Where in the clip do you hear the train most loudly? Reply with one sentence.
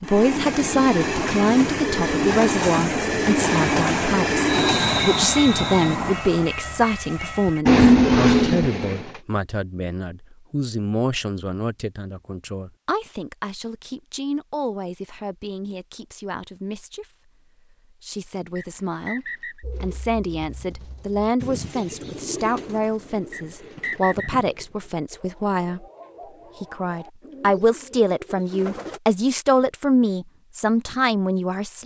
The volume of the train peaks at 8 seconds.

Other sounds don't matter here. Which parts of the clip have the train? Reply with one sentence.
You can hear the train from 0.0 to 9.2 s.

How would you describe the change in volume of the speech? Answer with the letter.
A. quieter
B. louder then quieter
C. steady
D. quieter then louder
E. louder
D.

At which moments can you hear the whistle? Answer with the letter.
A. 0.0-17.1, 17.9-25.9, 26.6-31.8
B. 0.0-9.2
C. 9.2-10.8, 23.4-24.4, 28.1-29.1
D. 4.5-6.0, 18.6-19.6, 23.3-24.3
D.